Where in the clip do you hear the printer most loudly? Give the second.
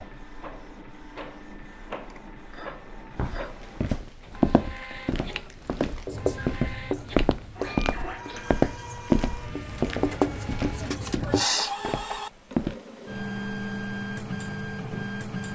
14 s.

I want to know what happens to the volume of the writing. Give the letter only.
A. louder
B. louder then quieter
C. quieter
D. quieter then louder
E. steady
D.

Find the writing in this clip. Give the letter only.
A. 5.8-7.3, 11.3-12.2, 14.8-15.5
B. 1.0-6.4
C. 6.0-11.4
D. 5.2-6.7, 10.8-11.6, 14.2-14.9
C.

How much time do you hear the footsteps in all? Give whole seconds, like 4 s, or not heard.
10 s.